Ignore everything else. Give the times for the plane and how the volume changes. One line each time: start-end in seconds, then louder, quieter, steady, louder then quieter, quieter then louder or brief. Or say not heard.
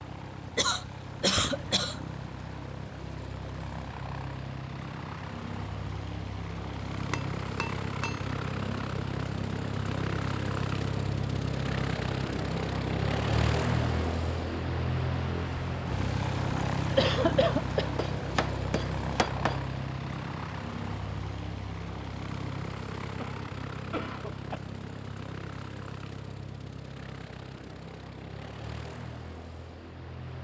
0.0-30.4 louder then quieter.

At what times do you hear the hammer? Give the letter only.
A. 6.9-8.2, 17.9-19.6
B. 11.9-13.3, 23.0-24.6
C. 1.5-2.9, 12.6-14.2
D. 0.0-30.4
A.